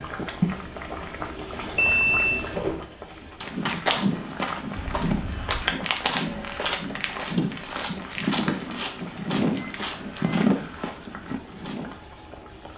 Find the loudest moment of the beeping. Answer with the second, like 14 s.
2 s.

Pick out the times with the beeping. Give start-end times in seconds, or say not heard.
1.8-2.5, 4.7-5.7, 9.6-10.4.